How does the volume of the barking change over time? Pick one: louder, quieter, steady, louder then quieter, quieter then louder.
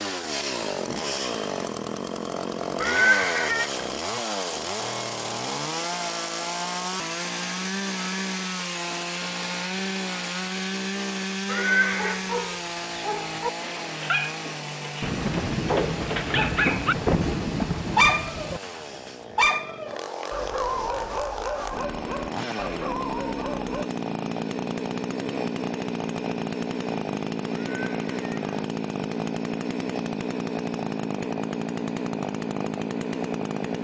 louder then quieter.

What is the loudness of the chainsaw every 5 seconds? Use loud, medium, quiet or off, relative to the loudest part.
loud, loud, loud, medium, loud, loud, loud.